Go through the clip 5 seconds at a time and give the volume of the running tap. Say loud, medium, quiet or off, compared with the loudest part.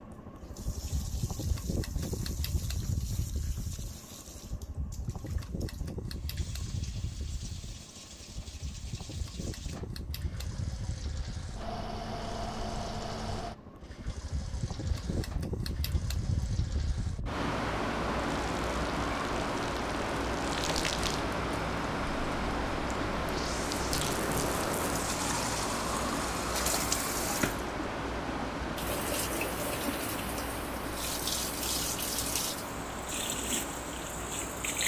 quiet, quiet, quiet, quiet, loud, loud, loud.